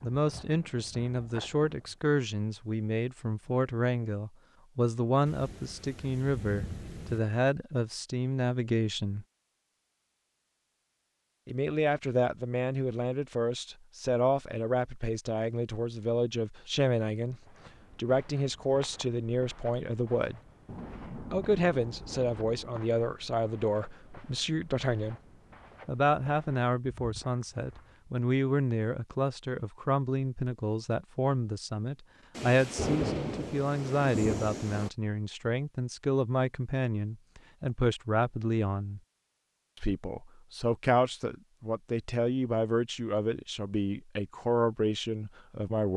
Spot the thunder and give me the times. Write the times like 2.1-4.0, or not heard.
5.2-7.2, 20.6-22.7, 32.4-34.9.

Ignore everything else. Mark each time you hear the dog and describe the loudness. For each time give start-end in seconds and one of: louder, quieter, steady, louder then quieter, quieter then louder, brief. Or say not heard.
not heard.